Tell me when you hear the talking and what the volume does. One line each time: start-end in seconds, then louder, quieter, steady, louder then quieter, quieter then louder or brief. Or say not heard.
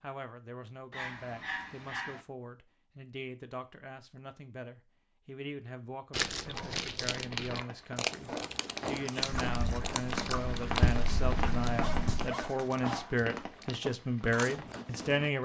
0.0-15.4 louder.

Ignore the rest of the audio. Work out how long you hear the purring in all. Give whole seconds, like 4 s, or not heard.
3 s.